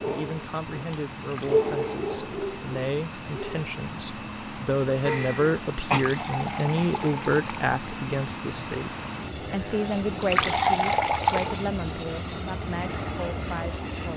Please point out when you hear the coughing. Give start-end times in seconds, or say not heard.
5.0-6.0.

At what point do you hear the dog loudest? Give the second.
2 s.